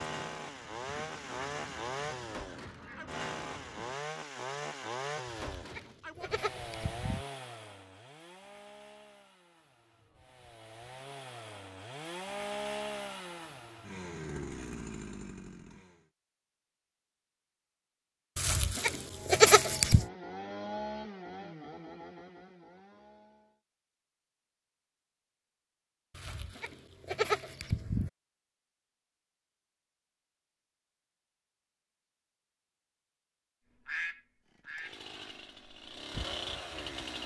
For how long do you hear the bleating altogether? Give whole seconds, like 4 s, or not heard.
6 s.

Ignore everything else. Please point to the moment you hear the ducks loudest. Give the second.
34 s.